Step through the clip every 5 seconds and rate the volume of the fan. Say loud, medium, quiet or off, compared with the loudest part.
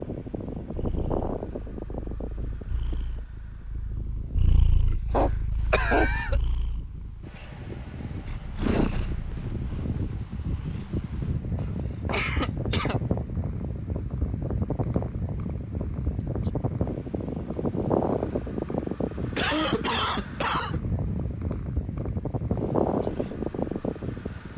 medium, medium, loud, loud, loud.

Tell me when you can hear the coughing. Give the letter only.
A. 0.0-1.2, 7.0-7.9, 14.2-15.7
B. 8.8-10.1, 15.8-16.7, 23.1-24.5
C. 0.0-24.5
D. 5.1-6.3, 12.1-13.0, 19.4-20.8
D.